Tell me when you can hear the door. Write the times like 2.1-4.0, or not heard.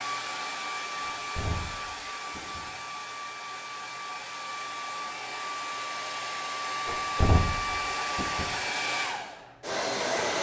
1.0-2.7, 6.8-8.6.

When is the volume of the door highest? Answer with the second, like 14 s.
7 s.